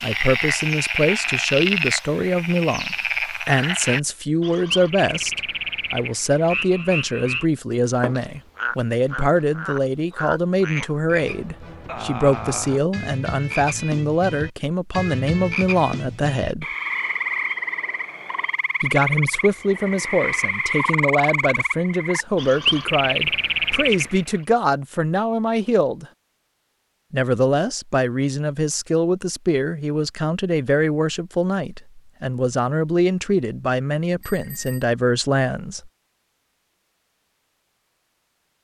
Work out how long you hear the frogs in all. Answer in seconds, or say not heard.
24 s.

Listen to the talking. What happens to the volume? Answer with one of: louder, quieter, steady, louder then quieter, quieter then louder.
steady.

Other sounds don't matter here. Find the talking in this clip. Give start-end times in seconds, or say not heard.
0.0-16.6, 18.8-26.1, 27.1-35.9.